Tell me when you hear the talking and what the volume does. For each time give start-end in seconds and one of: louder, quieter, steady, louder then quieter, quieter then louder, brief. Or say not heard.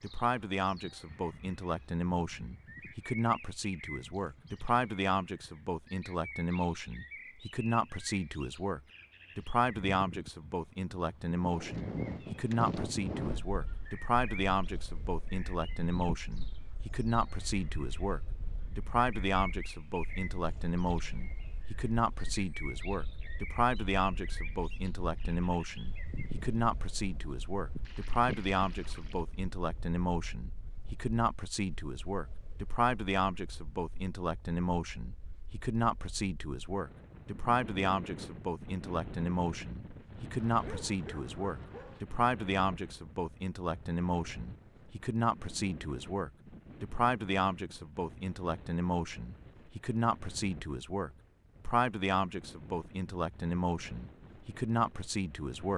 0.0-55.7 steady.